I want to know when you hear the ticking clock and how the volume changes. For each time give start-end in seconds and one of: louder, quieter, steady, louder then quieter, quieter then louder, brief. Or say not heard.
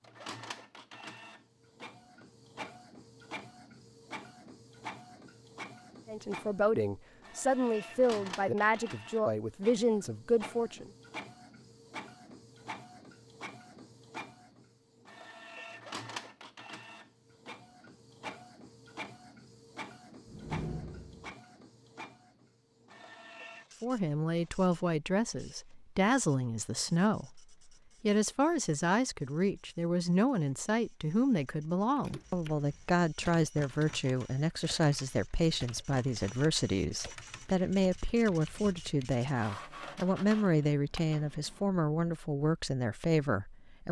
not heard.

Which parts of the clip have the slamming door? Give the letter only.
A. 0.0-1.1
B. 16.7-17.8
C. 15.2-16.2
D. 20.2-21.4
D.